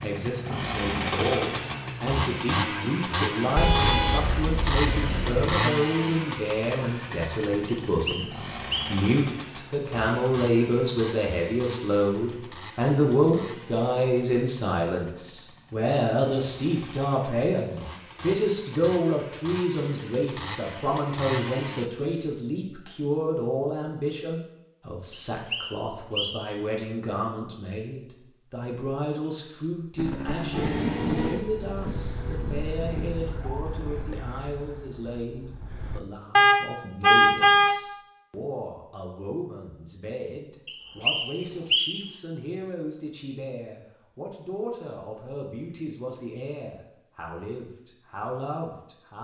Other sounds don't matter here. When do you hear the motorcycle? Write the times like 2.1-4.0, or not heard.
0.0-21.9, 29.9-36.0.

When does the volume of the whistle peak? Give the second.
42 s.